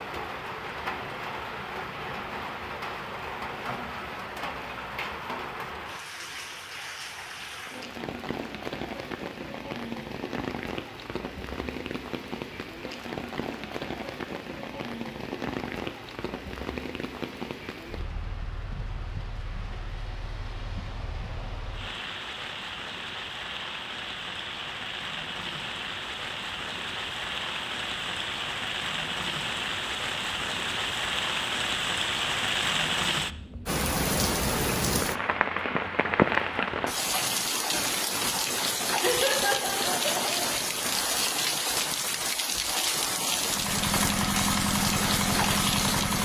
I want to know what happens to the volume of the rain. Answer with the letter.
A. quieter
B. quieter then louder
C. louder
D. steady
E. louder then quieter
C.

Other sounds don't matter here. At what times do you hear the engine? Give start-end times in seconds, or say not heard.
43.4-46.1.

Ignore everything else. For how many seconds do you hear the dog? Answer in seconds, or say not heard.
not heard.